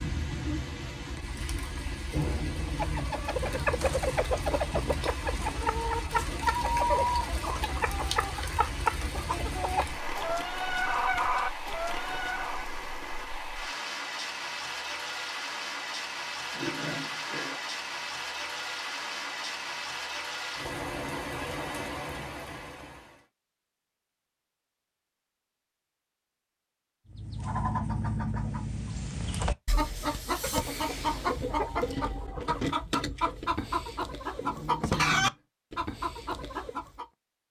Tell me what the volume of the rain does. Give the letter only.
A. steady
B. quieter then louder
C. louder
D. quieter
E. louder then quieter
A.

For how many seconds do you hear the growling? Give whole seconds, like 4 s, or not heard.
4 s.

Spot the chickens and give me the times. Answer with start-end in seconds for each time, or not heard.
2.6-12.7, 27.1-37.0.